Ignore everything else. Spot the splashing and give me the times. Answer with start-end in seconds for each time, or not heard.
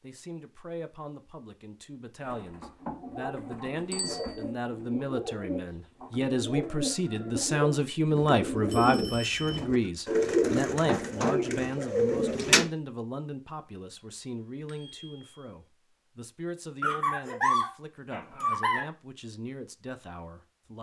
not heard.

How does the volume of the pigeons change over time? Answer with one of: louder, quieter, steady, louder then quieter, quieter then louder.
louder.